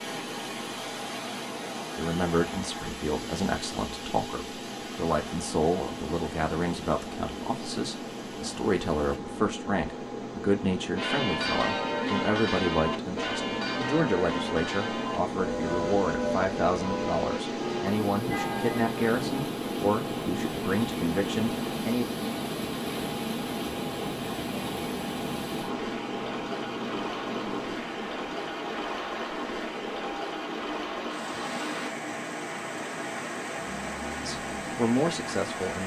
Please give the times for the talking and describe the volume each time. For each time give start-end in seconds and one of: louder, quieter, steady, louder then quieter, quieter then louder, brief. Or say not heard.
1.9-22.1 steady
34.2-35.8 brief.